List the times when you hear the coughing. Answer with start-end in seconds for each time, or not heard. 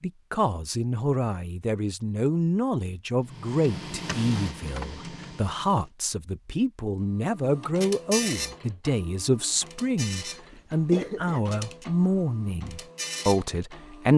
10.5-11.4.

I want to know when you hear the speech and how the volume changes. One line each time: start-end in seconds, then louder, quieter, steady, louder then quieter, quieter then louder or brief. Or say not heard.
0.0-14.1 steady.